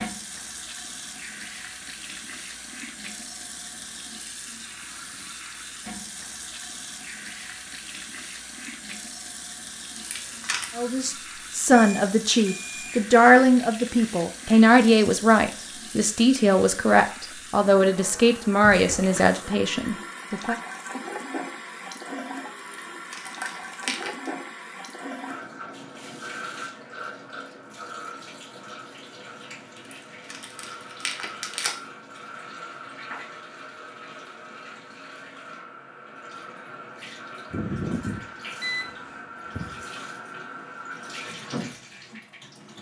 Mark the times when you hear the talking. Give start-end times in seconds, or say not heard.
10.8-20.6.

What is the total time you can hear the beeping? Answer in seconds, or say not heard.
4 s.